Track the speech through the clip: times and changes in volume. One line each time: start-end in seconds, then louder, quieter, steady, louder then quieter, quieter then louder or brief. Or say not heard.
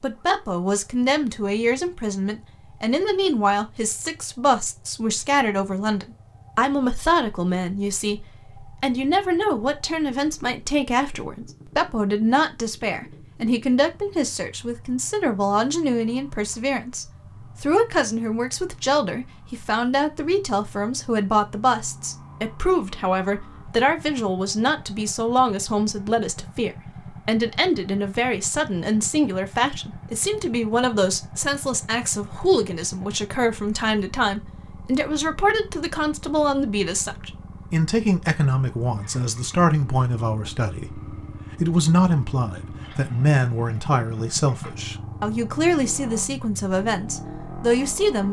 0.0-48.2 steady.